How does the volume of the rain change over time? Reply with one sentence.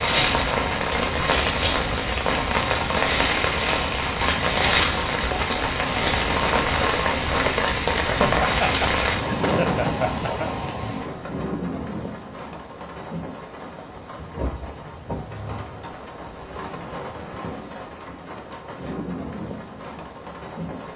The volume of the rain goes down.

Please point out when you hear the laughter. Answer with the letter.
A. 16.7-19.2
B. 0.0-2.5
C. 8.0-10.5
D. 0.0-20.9
C.